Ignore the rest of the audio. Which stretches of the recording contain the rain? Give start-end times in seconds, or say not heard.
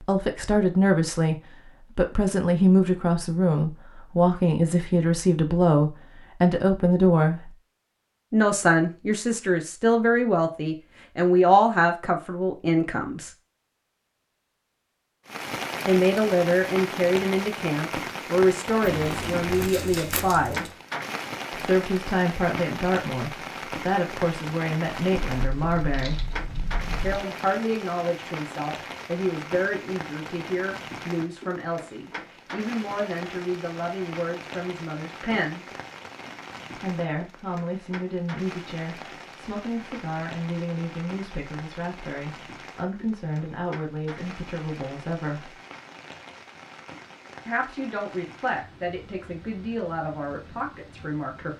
15.2-51.5.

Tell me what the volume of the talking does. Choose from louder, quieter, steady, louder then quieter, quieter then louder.
quieter.